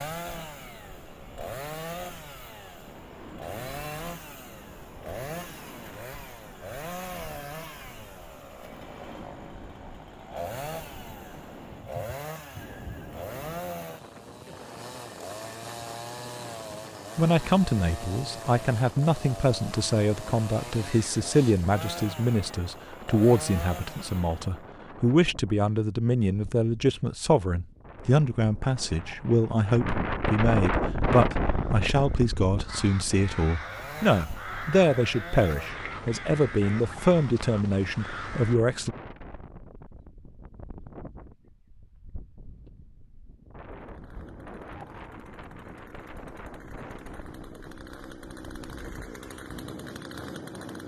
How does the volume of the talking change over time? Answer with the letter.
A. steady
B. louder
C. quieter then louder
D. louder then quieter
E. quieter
A.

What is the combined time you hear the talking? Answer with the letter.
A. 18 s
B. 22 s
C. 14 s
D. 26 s
B.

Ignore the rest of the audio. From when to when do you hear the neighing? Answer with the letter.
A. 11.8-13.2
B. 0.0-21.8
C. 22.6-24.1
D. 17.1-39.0
A.